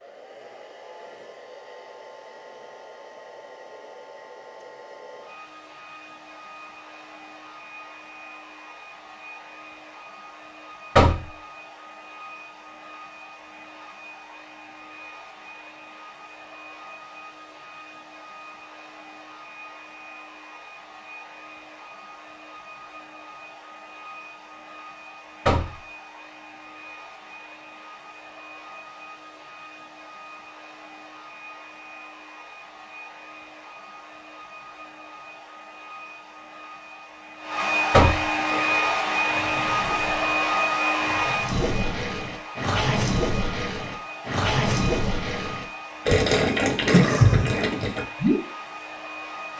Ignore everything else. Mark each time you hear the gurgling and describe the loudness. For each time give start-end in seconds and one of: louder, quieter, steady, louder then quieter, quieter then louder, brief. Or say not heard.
38.5-48.4 louder.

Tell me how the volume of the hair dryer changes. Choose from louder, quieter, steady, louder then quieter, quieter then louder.
louder.